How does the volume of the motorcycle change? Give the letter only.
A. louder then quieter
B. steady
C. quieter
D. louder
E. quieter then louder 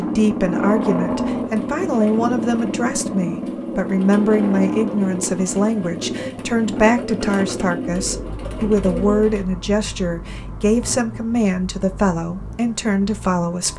C.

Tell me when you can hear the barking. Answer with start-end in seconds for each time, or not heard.
not heard.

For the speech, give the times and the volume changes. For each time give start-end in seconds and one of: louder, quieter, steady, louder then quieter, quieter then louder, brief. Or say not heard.
0.0-13.7 steady.